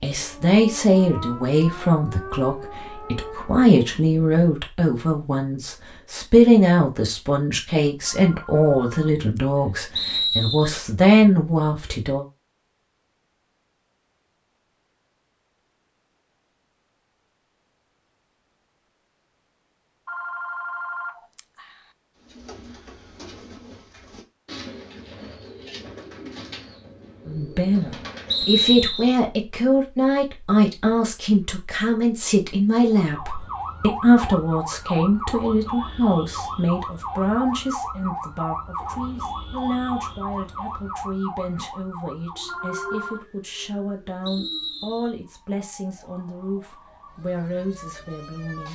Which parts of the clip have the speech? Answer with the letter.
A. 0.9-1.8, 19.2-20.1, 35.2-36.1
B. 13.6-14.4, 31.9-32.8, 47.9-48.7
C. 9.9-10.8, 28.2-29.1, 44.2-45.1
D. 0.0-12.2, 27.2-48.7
D.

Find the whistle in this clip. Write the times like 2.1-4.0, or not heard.
9.9-10.8, 28.2-29.1, 44.2-45.1.